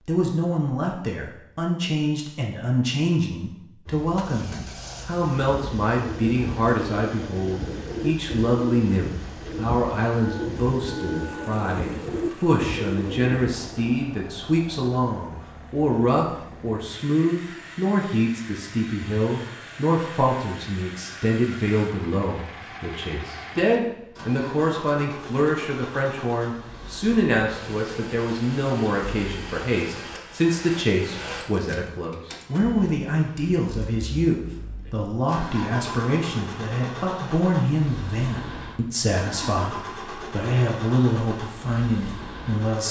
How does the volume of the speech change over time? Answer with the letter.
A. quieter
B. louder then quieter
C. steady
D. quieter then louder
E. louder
C.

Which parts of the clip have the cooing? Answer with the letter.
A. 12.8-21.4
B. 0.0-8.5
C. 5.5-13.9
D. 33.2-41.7
C.